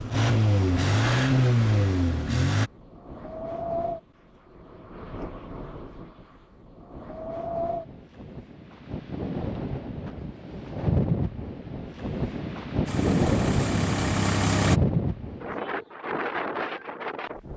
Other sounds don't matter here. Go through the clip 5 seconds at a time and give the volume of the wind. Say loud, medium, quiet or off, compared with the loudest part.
medium, medium, loud, medium.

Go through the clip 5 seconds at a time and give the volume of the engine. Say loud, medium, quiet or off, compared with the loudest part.
loud, off, loud, off.